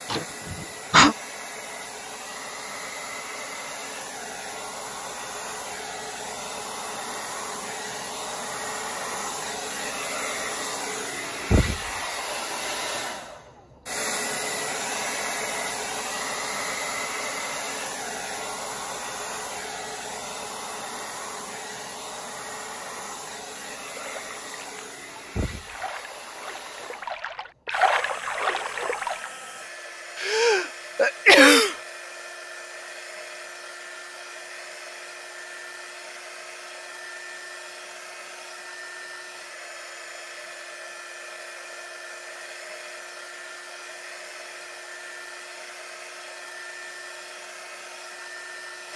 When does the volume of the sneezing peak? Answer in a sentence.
The loudest moment of the sneezing is at 31 seconds.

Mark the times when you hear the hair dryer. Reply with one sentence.
The hair dryer can be heard from 0.0 to 48.9 s.